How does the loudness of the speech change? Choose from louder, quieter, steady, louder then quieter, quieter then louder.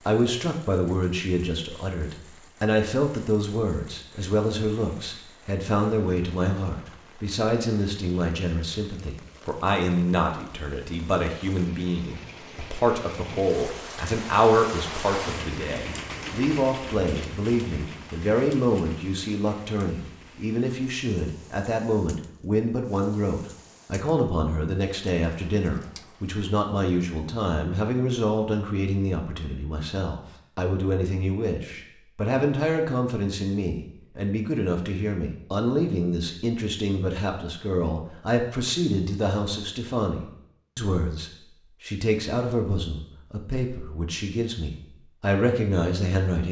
steady.